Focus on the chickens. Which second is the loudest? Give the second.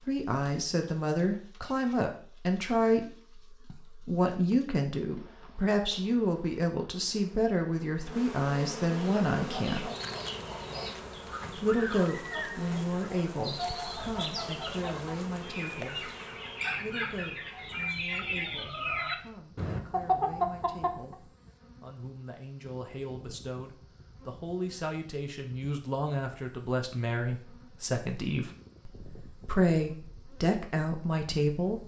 20 s.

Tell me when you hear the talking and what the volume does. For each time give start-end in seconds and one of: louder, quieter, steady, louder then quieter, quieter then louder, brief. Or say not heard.
0.1-9.9 steady
11.6-16.1 quieter
16.8-31.8 louder.